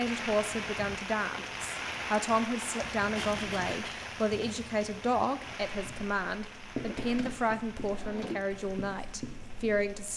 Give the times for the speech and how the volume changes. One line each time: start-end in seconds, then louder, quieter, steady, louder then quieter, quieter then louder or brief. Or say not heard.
0.0-10.1 steady.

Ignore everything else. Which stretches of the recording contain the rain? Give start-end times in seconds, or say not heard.
0.0-10.1.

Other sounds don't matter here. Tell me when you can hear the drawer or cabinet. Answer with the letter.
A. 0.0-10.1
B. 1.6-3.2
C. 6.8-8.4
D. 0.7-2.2
C.